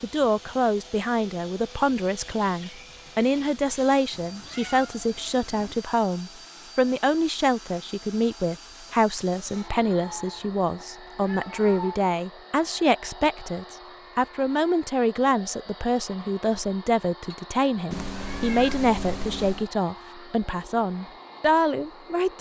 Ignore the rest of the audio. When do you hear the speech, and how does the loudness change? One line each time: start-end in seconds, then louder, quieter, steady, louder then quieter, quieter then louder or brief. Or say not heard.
0.0-22.3 steady.